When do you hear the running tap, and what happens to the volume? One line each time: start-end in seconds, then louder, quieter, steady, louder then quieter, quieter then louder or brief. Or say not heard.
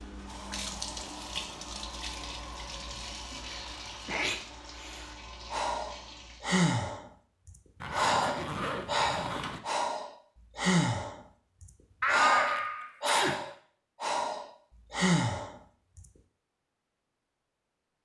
0.0-6.5 quieter.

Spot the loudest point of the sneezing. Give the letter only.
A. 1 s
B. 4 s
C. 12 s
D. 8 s
C.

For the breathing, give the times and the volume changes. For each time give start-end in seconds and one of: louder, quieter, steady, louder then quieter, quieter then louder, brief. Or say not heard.
5.5-16.1 steady.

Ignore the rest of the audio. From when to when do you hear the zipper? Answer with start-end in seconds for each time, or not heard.
7.8-9.6.